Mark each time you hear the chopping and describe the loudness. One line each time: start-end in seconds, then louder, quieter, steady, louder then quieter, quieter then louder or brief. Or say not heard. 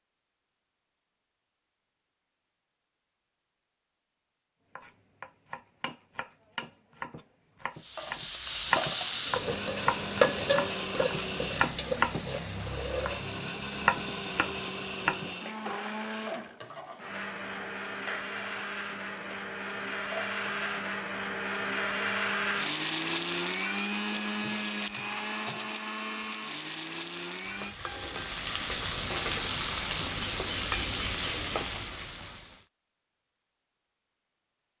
4.8-15.3 louder.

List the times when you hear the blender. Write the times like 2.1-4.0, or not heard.
9.3-27.8.